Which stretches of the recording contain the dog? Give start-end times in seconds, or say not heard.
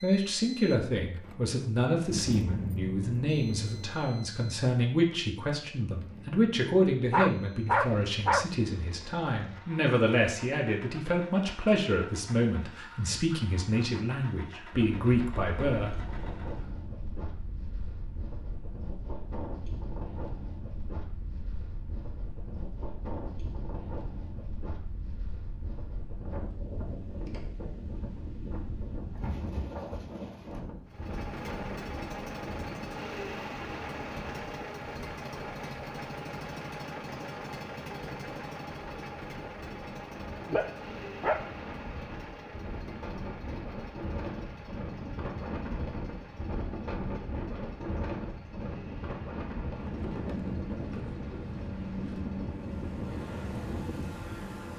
7.1-8.4, 40.5-41.5.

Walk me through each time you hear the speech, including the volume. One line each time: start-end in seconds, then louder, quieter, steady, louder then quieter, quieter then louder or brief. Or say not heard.
0.0-15.9 steady.